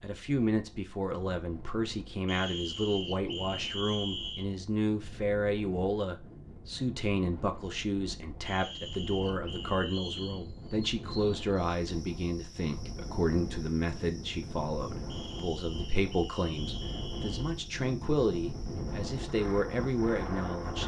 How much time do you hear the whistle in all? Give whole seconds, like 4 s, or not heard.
7 s.